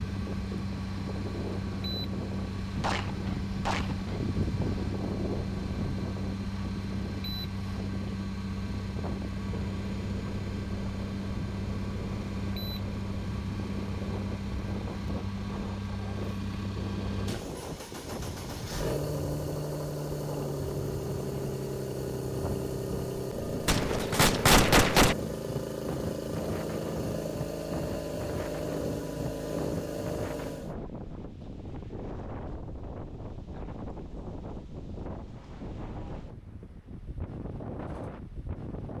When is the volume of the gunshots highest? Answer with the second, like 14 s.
25 s.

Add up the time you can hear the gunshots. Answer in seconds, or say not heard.
5 s.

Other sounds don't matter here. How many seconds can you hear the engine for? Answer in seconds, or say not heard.
31 s.